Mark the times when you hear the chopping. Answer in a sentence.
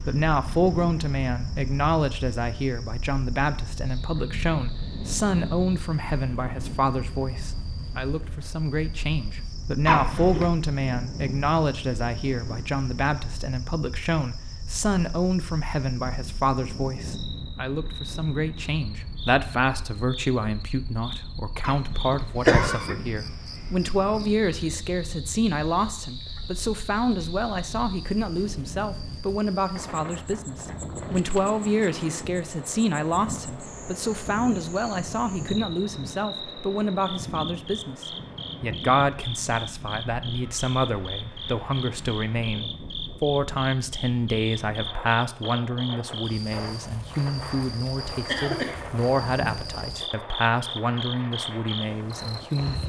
The chopping can't be heard in this clip.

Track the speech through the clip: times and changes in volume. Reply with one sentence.
The speech can be heard from 0.0 to 52.8 s, at a steady volume.